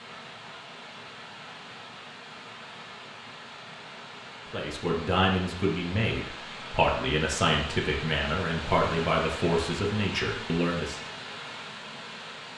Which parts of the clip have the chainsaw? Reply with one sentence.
The chainsaw can't be heard in this clip.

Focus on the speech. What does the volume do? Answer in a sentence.
The volume of the speech stays about the same.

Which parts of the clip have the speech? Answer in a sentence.
The speech can be heard from 4.5 to 11.0 s.